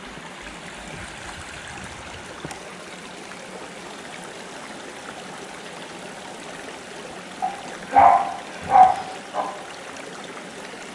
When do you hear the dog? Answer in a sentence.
The dog can be heard from 7.4 to 9.4 s.